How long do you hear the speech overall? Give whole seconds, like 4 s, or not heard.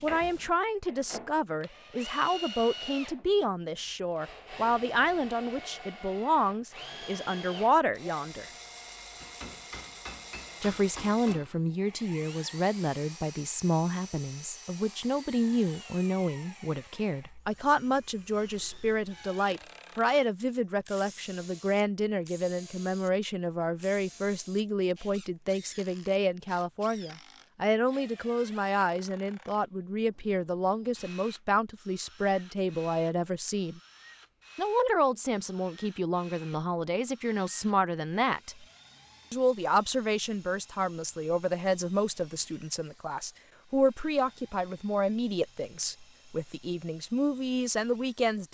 45 s.